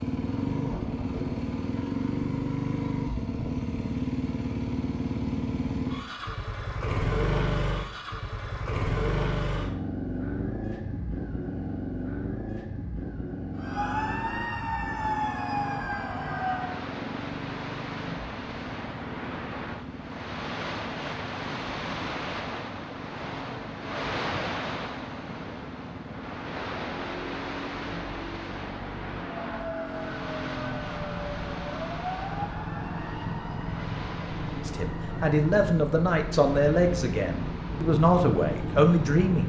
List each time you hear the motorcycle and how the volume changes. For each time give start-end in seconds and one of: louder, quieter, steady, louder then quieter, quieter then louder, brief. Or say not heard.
0.0-39.4 quieter then louder.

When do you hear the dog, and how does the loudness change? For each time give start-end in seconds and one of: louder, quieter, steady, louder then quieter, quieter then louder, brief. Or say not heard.
not heard.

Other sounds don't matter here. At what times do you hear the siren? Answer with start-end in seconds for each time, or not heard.
13.6-16.8, 29.1-35.4.